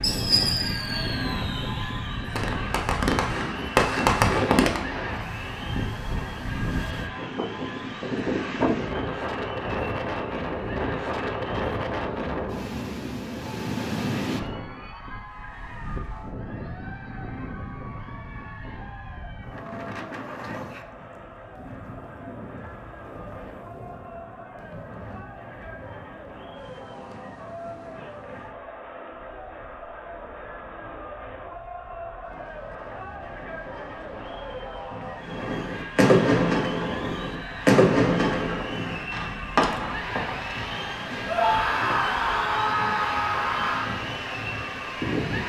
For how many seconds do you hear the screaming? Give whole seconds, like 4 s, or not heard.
3 s.